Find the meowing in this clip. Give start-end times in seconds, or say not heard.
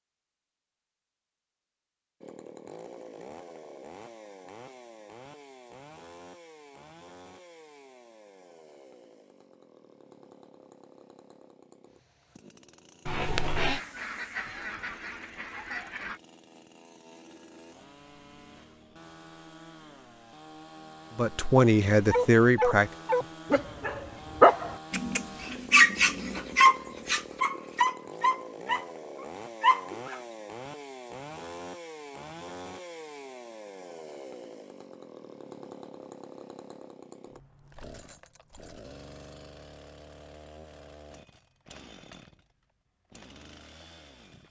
13.1-13.8.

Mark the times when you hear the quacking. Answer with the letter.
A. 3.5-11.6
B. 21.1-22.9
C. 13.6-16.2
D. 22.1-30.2
C.